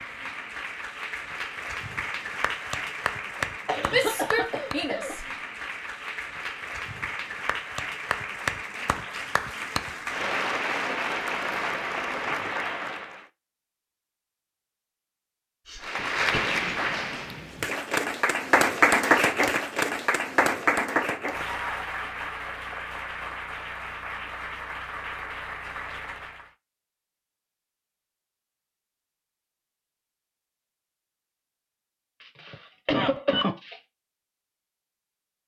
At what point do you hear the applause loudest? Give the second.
19 s.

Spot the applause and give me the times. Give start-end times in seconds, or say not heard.
0.0-13.2, 15.8-26.5.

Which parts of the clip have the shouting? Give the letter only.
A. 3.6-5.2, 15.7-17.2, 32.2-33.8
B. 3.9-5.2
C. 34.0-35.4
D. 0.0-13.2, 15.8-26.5
B.